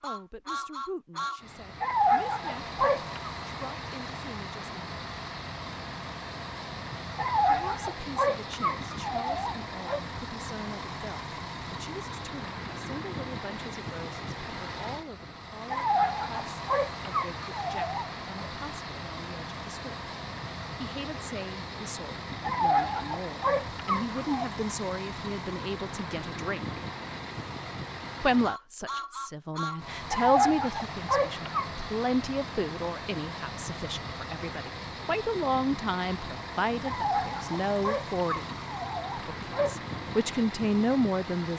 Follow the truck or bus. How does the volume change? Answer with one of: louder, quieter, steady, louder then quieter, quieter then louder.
steady.